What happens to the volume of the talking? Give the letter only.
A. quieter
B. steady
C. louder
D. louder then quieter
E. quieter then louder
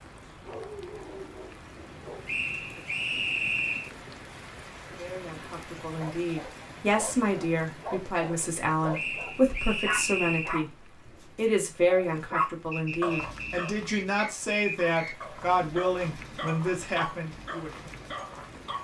B.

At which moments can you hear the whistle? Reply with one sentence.
You can hear the whistle from 2.2 to 3.9 s, from 8.9 to 10.6 s and from 12.7 to 15.2 s.